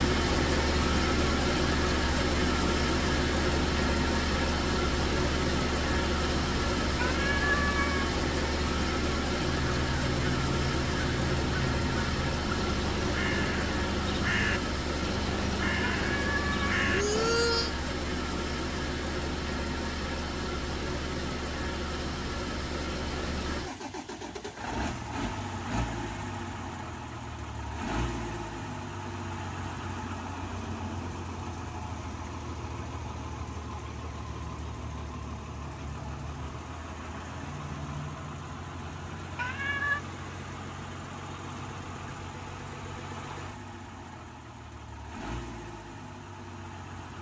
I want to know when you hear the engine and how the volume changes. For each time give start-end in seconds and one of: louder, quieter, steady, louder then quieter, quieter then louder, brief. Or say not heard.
0.0-47.1 quieter.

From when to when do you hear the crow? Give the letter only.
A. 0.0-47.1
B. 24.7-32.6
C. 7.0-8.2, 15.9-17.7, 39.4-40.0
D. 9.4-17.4
D.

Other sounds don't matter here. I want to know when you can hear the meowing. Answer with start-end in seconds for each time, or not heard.
7.0-8.2, 15.9-17.7, 39.4-40.0.